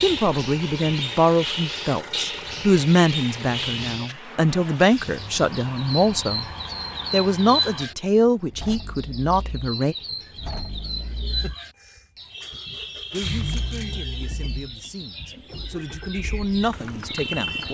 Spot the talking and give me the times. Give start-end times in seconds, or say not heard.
0.0-6.5, 7.1-9.9, 13.1-17.6.